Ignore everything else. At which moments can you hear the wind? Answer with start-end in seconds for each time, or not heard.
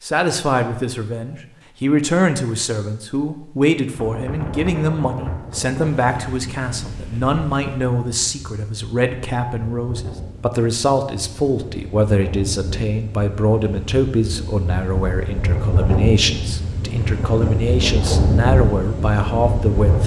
3.9-20.0.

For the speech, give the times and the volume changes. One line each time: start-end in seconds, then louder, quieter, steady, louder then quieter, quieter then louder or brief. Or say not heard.
0.0-20.0 steady.